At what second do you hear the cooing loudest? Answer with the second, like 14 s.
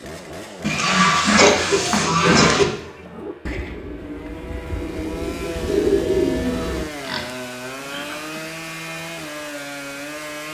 6 s.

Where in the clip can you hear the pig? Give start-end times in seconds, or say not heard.
0.6-2.6, 6.8-8.4.